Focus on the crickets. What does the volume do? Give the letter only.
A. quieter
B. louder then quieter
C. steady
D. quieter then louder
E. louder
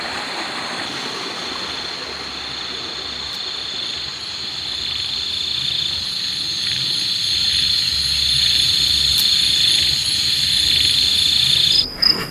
E.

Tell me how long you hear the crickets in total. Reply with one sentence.
The crickets can be heard for 12 seconds in total.